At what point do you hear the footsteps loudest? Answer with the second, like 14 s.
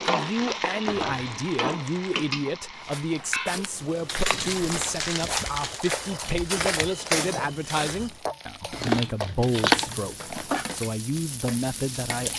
7 s.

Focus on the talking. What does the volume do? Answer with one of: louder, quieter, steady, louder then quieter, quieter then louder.
steady.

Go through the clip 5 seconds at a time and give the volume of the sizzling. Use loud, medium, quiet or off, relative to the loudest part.
loud, medium, medium.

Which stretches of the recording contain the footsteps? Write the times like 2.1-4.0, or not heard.
2.8-8.2.